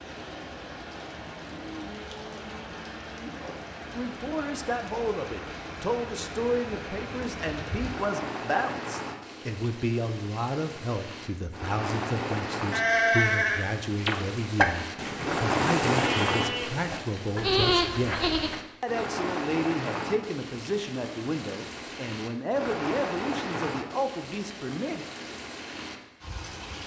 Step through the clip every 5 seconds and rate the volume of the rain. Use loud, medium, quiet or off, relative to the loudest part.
medium, medium, medium, loud, medium, medium.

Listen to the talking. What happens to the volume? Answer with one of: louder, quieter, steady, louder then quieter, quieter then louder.
steady.